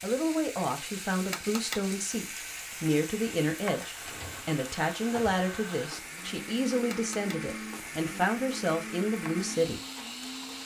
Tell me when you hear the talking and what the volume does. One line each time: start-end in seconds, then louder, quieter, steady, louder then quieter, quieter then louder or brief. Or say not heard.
0.0-9.8 steady.